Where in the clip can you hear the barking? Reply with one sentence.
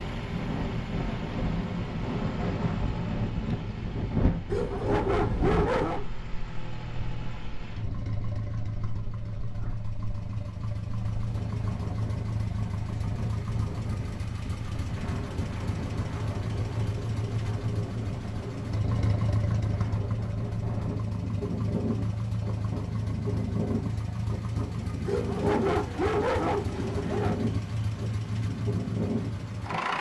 The barking can be heard from 4.5 to 6.0 s and from 25.1 to 27.4 s.